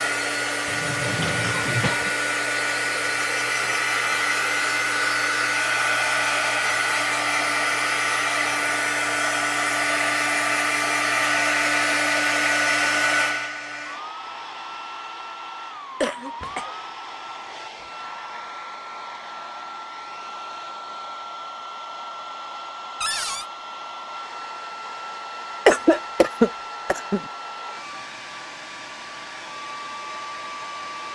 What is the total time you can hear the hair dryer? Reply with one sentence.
You can hear the hair dryer for 31 seconds altogether.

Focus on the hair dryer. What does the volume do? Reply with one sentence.
The volume of the hair dryer goes down.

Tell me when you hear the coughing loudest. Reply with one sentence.
The loudest moment of the coughing is at 26 seconds.